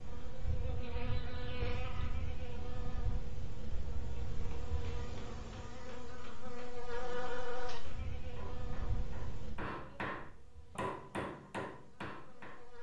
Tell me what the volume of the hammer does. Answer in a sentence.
The volume of the hammer goes up.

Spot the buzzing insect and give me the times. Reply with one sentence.
You can hear the buzzing insect from 0.0 to 12.7 s.